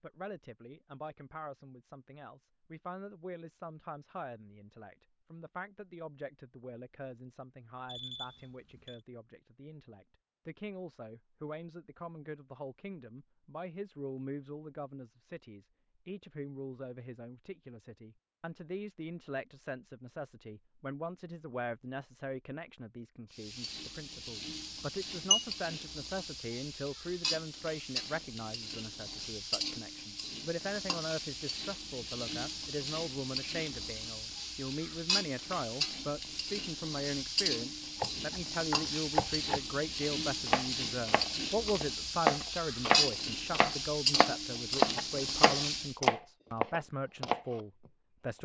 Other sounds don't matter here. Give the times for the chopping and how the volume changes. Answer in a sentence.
You can hear the chopping from 38.0 to 48.4 s, getting louder then quieter.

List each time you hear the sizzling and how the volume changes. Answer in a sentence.
You can hear the sizzling from 23.3 to 46.0 s, getting louder.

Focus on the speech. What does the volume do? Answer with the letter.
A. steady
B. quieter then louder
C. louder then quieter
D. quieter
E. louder
E.